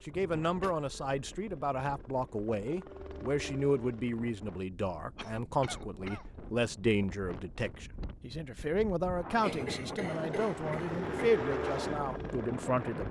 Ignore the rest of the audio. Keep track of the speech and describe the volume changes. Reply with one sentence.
The volume of the speech stays about the same.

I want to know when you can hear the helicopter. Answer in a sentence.
The helicopter can be heard from 0.0 to 4.7 s and from 10.1 to 13.0 s.